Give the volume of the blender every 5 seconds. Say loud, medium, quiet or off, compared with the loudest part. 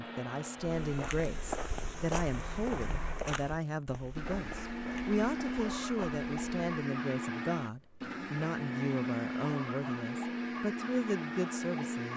medium, loud, loud.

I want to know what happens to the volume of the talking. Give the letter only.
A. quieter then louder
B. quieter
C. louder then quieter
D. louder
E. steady
E.